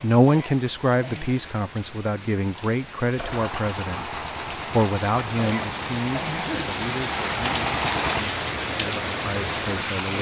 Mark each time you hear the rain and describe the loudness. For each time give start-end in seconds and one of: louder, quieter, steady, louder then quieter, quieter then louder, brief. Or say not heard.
0.0-10.1 louder.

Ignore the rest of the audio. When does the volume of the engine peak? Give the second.
8 s.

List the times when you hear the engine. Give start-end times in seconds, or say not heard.
3.1-8.2.